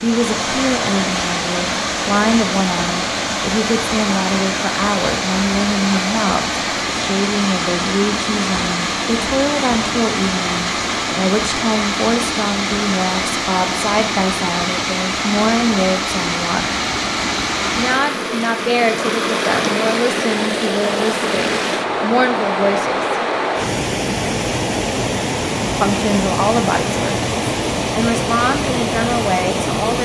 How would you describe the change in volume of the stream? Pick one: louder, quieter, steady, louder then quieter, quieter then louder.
steady.